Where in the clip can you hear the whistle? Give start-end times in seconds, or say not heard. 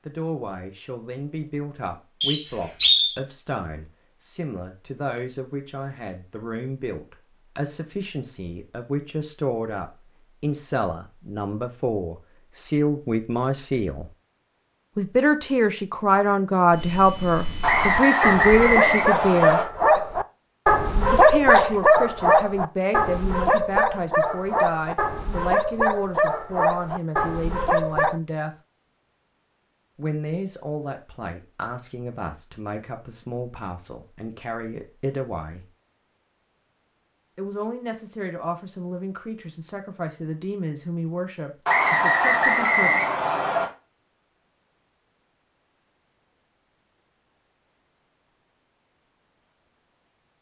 2.2-3.1, 17.6-19.6, 41.6-43.6.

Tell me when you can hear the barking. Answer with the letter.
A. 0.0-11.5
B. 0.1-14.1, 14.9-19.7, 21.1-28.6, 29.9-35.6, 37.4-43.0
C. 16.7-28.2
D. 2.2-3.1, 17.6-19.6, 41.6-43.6
C.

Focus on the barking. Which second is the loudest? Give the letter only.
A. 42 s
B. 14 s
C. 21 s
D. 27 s
C.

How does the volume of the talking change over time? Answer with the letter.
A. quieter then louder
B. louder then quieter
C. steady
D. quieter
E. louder
B.